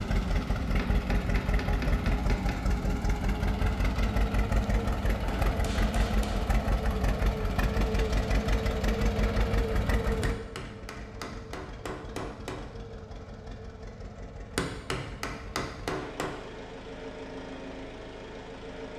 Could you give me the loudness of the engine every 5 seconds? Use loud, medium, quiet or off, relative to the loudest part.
loud, loud, medium, medium.